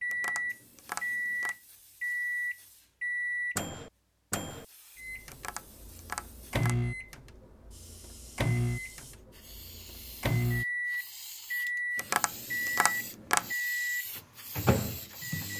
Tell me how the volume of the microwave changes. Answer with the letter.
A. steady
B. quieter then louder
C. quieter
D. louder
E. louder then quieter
B.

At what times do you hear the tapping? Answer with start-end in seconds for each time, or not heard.
0.1-1.6, 5.3-6.8, 11.9-13.5.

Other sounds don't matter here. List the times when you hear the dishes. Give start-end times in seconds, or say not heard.
not heard.